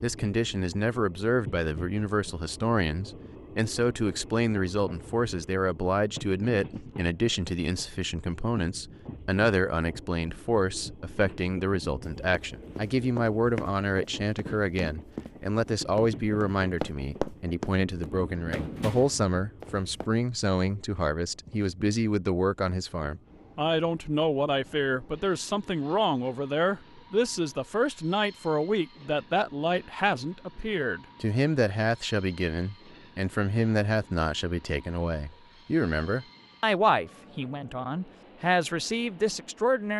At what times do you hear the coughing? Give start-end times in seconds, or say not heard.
not heard.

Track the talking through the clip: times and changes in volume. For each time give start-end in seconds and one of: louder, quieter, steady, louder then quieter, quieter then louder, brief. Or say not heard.
0.0-39.9 steady.